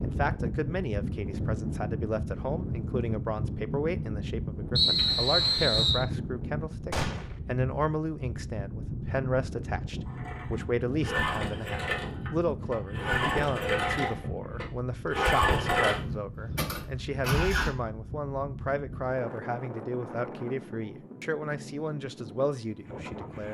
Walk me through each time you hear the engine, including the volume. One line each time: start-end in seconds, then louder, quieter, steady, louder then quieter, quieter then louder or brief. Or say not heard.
10.1-17.7 louder then quieter.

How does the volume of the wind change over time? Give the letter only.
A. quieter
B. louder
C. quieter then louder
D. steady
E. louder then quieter
A.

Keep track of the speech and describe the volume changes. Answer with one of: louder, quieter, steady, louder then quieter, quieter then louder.
steady.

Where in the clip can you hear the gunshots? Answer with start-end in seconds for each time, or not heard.
6.9-7.4.